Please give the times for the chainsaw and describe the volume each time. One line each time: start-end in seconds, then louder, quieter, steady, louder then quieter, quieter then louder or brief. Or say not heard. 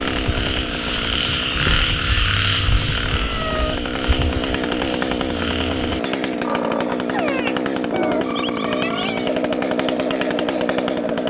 0.0-11.2 louder.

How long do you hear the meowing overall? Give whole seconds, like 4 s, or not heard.
2 s.